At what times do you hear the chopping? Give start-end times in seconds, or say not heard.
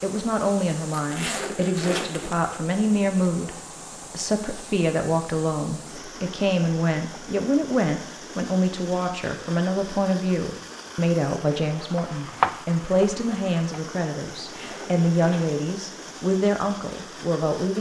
11.9-13.8.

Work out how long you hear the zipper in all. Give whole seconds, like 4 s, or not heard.
3 s.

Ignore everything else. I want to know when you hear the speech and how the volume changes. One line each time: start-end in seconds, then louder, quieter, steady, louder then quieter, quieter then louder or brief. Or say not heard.
0.0-17.7 steady.